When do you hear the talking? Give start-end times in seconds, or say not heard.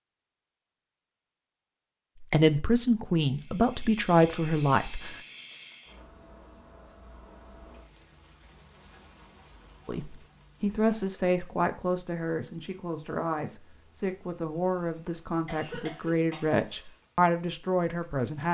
2.2-5.2, 9.8-18.4.